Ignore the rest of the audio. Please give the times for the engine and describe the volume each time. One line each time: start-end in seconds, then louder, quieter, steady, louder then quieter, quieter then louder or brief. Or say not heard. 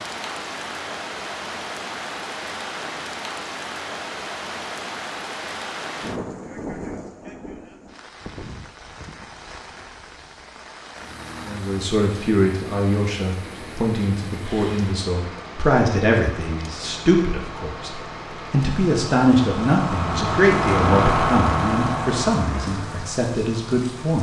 10.9-24.1 louder.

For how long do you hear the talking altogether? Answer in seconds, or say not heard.
13 s.